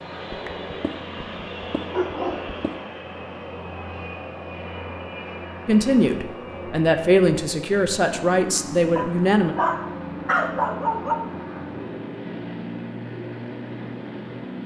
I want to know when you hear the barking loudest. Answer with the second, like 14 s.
10 s.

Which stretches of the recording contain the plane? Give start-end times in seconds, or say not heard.
0.0-14.6.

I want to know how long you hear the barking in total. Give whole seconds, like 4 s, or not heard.
5 s.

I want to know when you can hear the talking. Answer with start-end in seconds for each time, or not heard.
5.7-9.6.